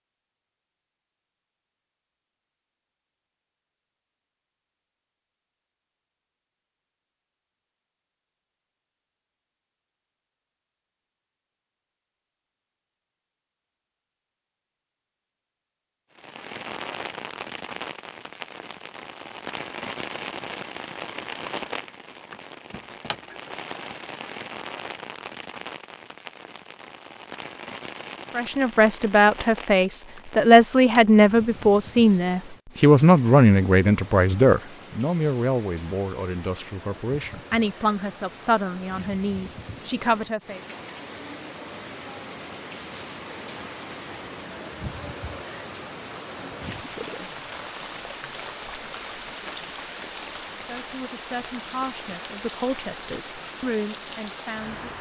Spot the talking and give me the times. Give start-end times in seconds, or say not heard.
28.4-40.6, 50.5-54.9.